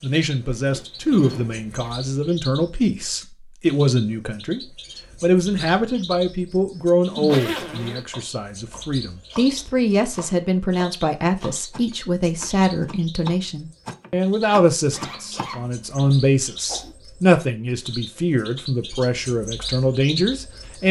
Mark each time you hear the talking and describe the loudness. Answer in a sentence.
You can hear the talking from 0.0 to 20.8 s, at a steady volume.